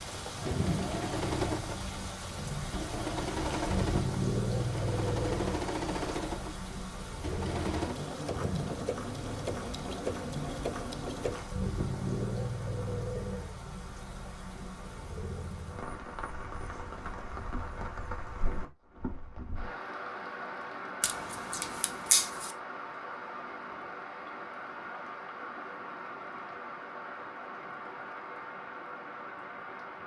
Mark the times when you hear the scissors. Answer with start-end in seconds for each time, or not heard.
21.0-22.6.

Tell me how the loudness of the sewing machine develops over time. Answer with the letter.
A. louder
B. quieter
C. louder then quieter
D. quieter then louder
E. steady
E.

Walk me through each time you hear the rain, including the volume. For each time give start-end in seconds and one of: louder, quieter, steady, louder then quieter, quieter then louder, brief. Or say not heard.
0.0-30.0 quieter.